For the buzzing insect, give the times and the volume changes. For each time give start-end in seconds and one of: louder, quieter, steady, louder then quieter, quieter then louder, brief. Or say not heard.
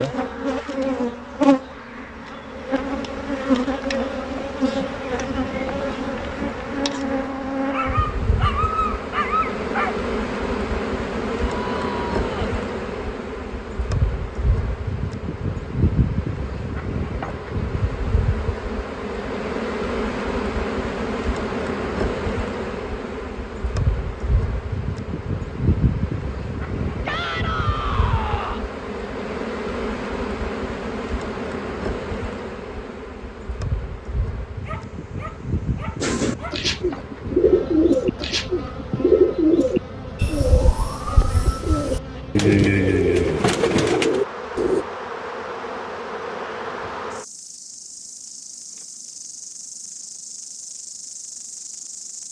0.0-52.2 quieter.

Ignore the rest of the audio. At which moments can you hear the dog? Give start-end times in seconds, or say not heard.
7.7-10.0, 34.6-36.7.